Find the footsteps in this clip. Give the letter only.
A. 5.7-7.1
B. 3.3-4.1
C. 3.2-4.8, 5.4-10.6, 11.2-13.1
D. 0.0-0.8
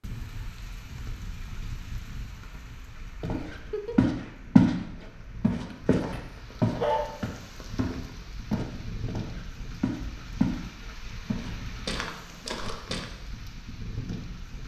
C.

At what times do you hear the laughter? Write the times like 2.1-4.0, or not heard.
3.3-4.1.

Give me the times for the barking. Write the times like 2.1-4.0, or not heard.
5.7-7.1.